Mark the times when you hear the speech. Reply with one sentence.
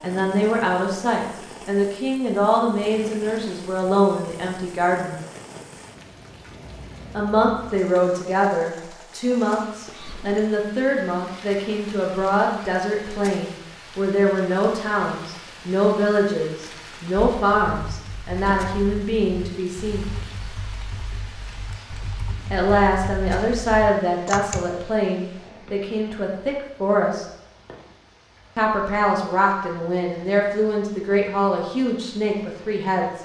You can hear the speech from 0.0 to 5.2 s, from 7.1 to 20.1 s, from 22.5 to 27.2 s and from 28.6 to 33.1 s.